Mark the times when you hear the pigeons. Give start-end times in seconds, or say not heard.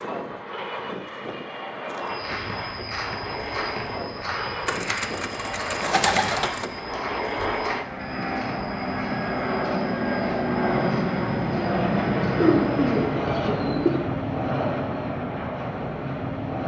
4.7-6.7, 12.3-14.1.